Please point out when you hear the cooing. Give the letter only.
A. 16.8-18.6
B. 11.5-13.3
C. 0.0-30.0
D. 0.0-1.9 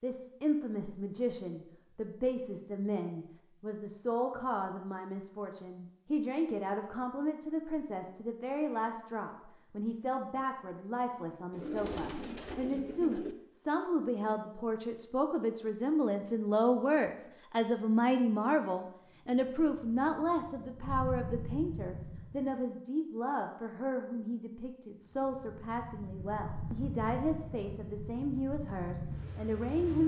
B.